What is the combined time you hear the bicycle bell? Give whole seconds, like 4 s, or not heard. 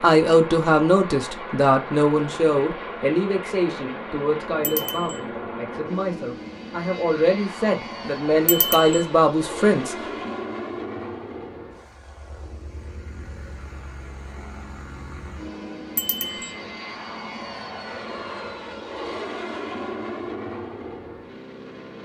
2 s.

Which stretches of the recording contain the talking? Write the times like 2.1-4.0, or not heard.
0.0-10.3.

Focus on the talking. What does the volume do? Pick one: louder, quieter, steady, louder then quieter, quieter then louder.
quieter then louder.